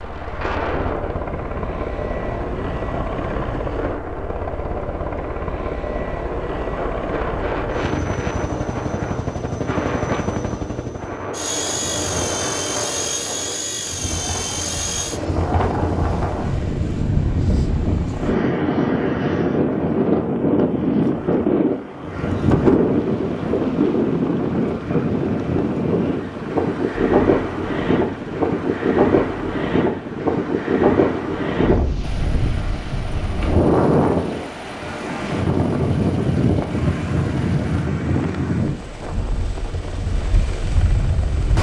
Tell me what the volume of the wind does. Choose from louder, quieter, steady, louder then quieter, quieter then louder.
louder.